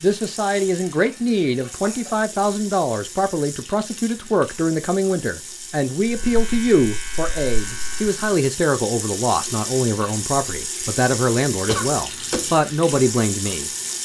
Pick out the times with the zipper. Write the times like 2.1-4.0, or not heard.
not heard.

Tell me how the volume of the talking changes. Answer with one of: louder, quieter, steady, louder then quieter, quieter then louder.
steady.